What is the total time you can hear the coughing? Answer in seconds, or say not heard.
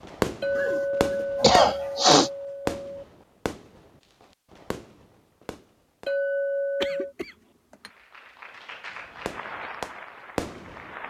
3 s.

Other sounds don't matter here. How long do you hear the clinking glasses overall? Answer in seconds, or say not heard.
4 s.